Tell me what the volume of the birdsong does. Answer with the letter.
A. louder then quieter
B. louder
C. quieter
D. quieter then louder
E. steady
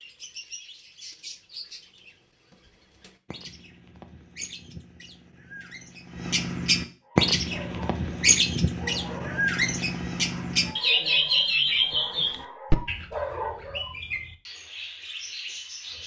A.